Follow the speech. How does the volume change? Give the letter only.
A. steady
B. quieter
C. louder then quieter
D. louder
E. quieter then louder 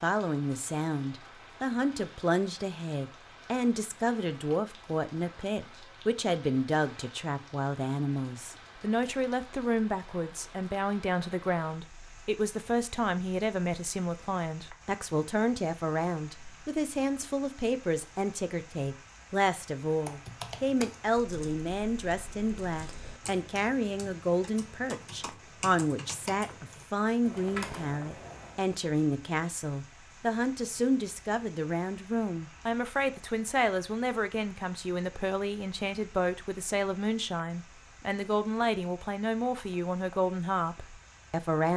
A.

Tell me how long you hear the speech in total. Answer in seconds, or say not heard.
42 s.